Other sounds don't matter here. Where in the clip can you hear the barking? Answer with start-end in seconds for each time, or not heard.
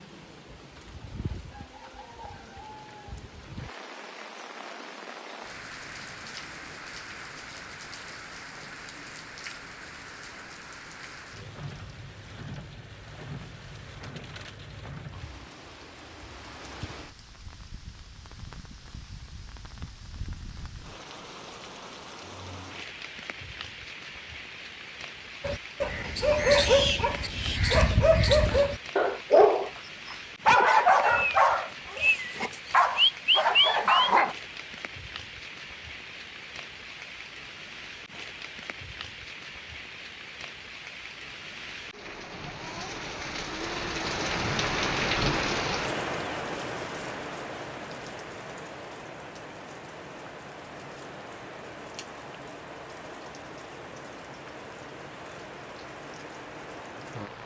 25.4-34.4.